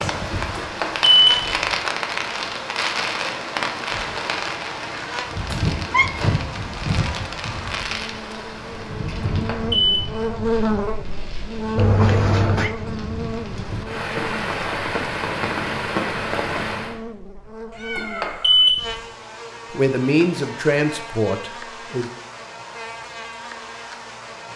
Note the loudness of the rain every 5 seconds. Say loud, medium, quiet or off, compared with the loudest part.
loud, loud, medium, loud, off.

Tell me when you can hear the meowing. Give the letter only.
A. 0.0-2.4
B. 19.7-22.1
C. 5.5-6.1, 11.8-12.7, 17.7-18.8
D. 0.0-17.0
C.